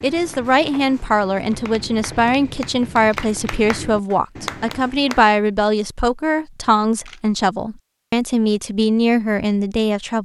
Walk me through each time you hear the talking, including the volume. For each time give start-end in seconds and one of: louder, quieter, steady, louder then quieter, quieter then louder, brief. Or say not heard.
0.0-10.2 steady.